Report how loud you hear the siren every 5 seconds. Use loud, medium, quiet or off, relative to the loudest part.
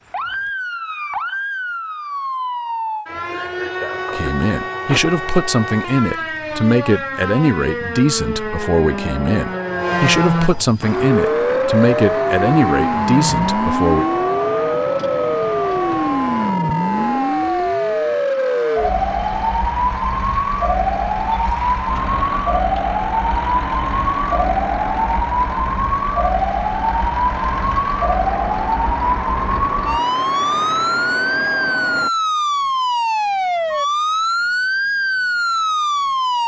medium, medium, loud, loud, loud, loud, loud, loud.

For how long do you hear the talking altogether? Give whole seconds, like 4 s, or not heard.
10 s.